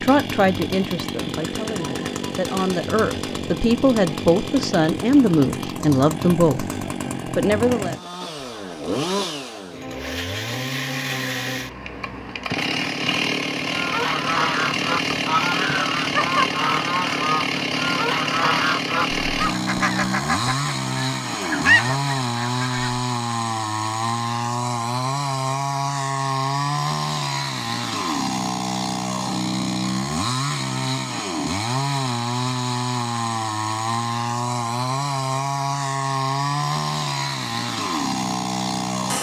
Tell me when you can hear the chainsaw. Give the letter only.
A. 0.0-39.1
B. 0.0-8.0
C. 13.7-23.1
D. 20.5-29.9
A.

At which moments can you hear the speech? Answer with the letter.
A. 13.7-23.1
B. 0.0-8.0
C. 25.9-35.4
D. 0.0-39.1
B.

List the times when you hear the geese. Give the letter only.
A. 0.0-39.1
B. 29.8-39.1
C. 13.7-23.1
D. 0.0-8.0
C.